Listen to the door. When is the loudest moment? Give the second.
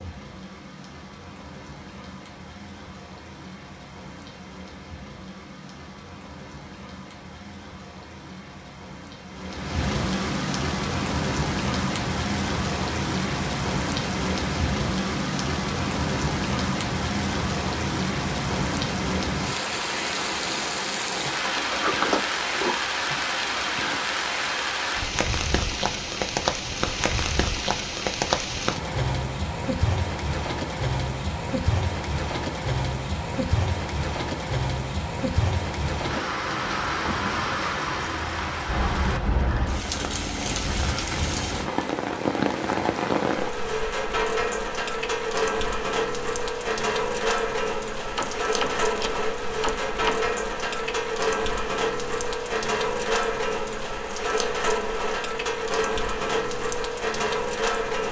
22 s.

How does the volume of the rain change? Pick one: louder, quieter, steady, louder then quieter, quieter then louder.
louder.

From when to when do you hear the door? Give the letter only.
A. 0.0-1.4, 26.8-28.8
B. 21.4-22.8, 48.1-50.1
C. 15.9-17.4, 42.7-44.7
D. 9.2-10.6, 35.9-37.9
B.